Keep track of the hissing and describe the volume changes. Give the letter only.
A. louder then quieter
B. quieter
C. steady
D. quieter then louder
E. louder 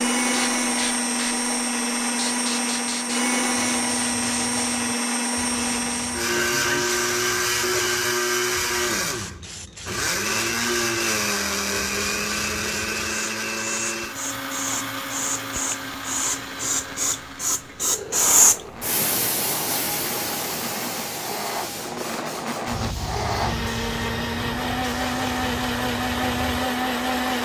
A.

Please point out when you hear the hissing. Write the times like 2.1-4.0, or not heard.
0.2-27.3.